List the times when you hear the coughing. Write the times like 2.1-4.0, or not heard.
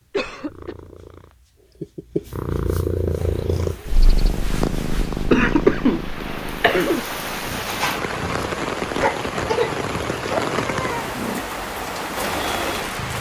0.1-0.8, 5.3-7.0, 9.0-11.1.